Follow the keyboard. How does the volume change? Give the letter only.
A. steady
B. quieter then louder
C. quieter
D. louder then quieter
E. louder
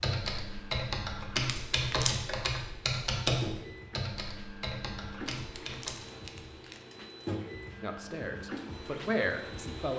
C.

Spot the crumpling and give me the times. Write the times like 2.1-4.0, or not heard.
1.4-2.2, 5.3-6.8.